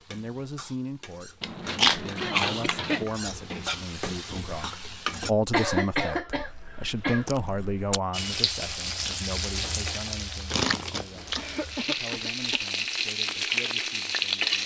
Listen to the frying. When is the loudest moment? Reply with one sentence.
The loudest moment of the frying is at 14 seconds.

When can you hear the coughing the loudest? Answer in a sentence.
The loudest moment of the coughing is at 6 seconds.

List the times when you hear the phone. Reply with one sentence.
You can't hear the phone here.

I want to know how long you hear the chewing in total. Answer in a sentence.
The chewing can be heard for 5 seconds in total.